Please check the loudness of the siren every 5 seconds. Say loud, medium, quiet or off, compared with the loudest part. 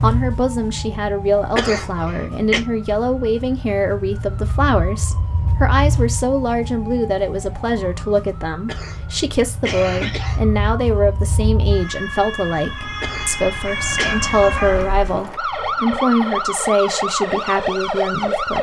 medium, medium, loud, loud.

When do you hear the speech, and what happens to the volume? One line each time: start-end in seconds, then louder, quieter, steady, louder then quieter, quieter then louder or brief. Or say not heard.
0.0-18.5 steady.